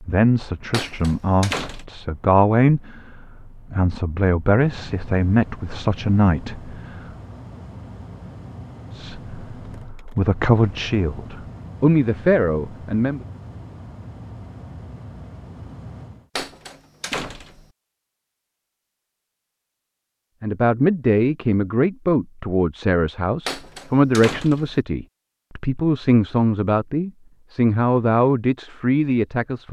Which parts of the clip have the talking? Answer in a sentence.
The talking can be heard from 0.0 to 7.0 s, from 8.9 to 13.2 s and from 20.4 to 29.6 s.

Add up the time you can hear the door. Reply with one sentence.
You can hear the door for 4 seconds altogether.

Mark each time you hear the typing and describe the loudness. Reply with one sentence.
You can't hear the typing here.